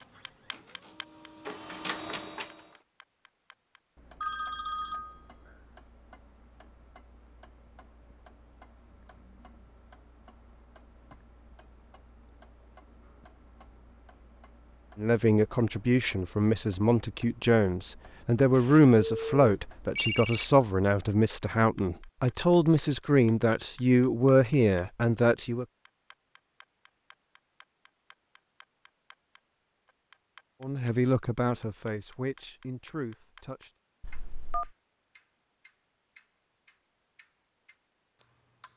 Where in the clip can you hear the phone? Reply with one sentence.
You can hear the phone from 4.2 to 5.5 s, from 18.6 to 20.4 s and from 34.0 to 34.7 s.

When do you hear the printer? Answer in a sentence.
The printer can be heard from 0.0 to 2.8 s.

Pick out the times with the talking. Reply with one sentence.
You can hear the talking from 14.9 to 25.6 s and from 30.6 to 33.7 s.